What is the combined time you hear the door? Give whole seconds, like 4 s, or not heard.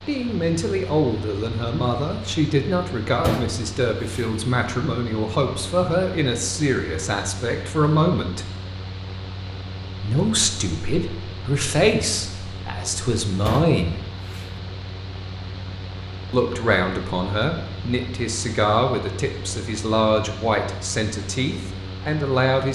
2 s.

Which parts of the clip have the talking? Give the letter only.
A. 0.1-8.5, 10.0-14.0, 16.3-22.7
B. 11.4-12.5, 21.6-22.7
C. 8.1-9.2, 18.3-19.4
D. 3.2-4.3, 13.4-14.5
A.